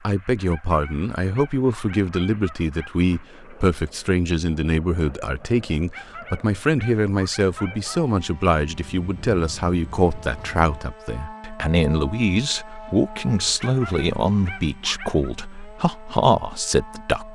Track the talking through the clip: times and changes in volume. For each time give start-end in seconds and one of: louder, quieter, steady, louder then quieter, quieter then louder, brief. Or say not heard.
0.1-17.3 steady.